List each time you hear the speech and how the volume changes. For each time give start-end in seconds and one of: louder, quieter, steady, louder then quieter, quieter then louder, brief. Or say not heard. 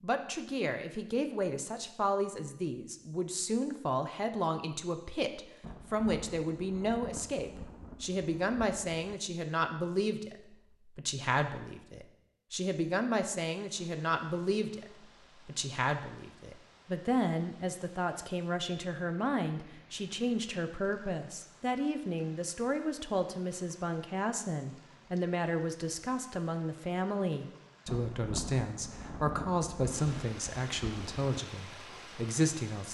0.0-32.8 steady.